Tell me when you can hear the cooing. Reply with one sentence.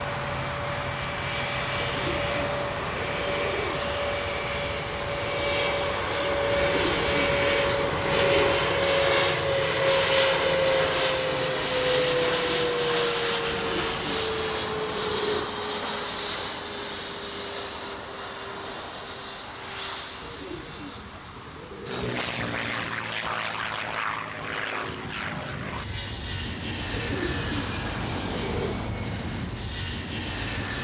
You can hear the cooing from 1.8 to 3.8 s, from 6.5 to 8.6 s, from 13.5 to 15.5 s, from 20.2 to 22.2 s and from 26.9 to 28.8 s.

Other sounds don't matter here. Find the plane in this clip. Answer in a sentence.
The plane can be heard from 0.0 to 30.7 s.